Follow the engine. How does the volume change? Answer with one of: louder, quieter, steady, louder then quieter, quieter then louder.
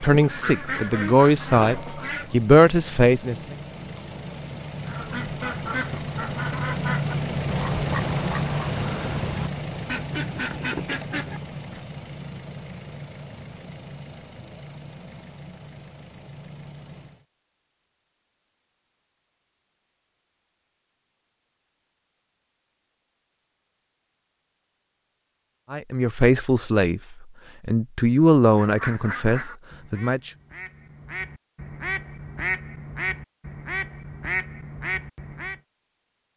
louder then quieter.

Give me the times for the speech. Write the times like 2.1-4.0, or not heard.
0.0-3.5, 25.7-27.0, 27.6-30.3.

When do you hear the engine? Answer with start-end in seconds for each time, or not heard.
0.1-17.2.